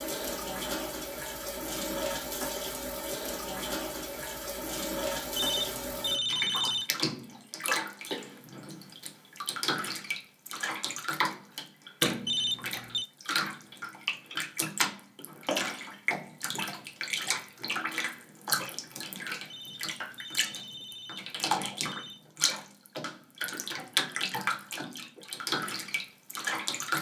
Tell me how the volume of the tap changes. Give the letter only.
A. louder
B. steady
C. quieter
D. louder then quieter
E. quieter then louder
B.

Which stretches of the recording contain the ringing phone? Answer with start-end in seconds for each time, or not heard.
5.3-6.9, 12.2-13.1, 19.5-22.2.